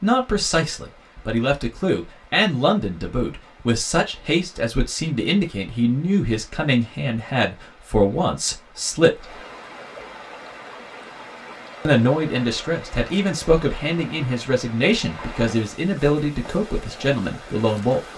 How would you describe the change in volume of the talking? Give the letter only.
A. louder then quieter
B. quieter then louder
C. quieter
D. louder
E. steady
E.